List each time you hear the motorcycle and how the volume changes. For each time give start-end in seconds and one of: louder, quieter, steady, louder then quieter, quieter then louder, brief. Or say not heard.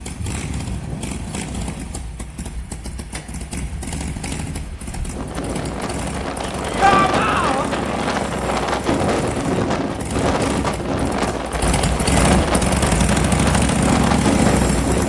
0.0-15.0 louder.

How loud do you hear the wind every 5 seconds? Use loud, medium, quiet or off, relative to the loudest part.
quiet, loud, loud.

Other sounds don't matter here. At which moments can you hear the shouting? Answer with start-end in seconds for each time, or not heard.
6.8-7.7.